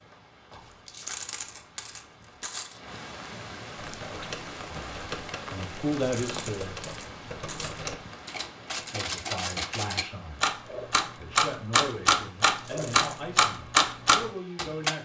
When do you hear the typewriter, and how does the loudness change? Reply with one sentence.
The typewriter can be heard from 3.8 to 14.9 s, getting louder.